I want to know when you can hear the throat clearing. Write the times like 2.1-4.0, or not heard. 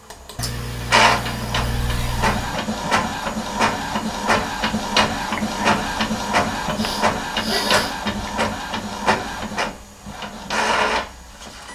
0.3-2.6, 6.7-8.0.